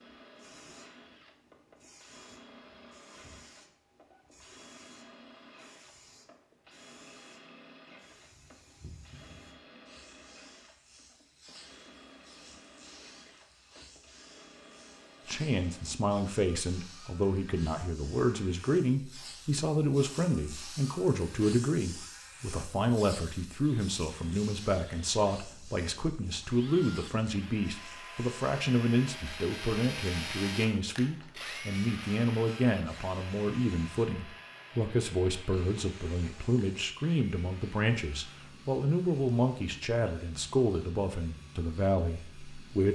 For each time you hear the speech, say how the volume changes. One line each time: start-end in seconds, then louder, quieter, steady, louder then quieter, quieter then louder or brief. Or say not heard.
15.2-42.9 steady.